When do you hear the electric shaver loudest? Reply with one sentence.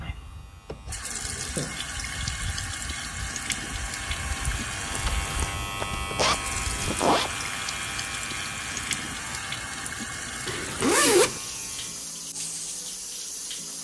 The volume of the electric shaver peaks at 6 seconds.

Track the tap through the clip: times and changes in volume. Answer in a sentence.
The tap can be heard from 0.0 to 13.8 s, at a steady volume.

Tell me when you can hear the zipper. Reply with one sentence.
You can hear the zipper from 1.6 to 2.3 s, from 4.8 to 7.3 s and from 10.4 to 11.4 s.